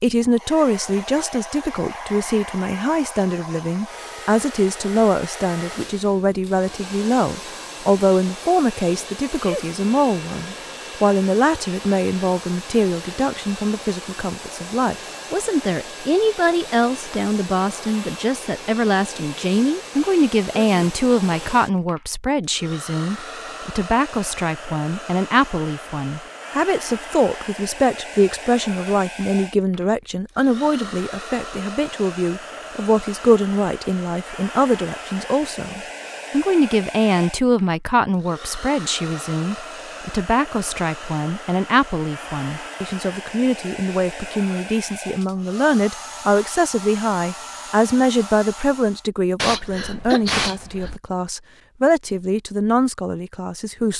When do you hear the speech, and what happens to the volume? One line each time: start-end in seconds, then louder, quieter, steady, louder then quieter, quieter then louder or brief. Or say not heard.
0.0-53.9 steady.